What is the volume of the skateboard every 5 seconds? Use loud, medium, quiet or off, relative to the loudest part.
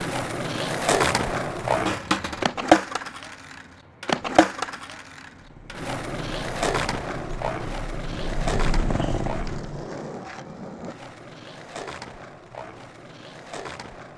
loud, medium, quiet.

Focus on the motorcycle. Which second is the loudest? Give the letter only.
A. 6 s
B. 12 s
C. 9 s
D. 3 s
C.